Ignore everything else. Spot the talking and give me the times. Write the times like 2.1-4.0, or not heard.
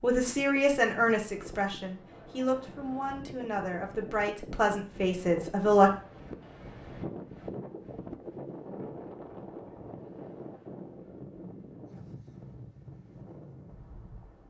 0.0-5.9.